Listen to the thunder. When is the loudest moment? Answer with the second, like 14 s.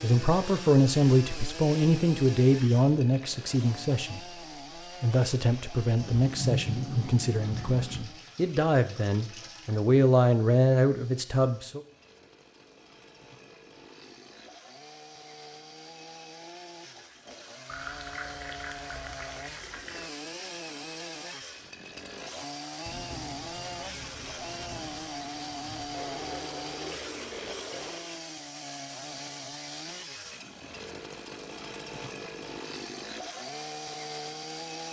7 s.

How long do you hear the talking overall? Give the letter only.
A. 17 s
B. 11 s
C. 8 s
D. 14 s
B.